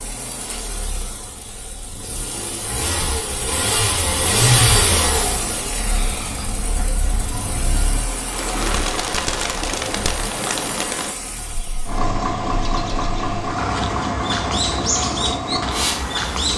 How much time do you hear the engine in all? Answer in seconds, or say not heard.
16 s.